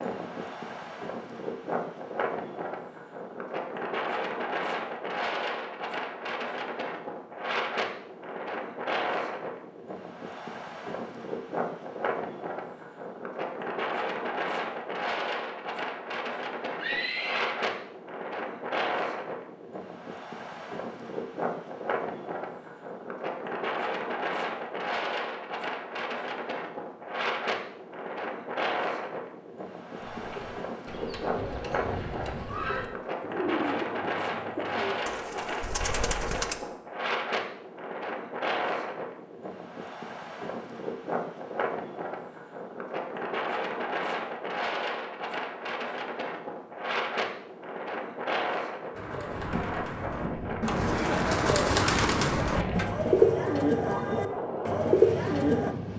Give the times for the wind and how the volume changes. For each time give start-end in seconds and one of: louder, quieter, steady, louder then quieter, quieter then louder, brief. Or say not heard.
0.0-55.9 steady.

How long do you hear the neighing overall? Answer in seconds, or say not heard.
2 s.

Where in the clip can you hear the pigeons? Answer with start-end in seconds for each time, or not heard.
30.0-36.6, 49.0-55.8.